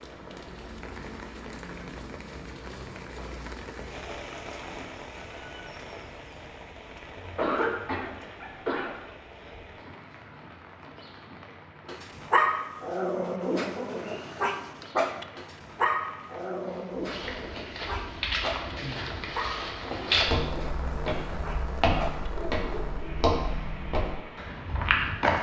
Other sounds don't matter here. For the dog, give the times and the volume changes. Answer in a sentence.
You can hear the dog from 11.8 to 23.1 s, getting quieter.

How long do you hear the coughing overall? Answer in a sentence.
You can hear the coughing for 2 seconds altogether.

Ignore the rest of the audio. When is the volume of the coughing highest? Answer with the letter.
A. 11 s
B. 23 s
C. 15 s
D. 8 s
D.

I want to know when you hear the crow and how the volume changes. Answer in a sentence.
The crow can't be heard in this clip.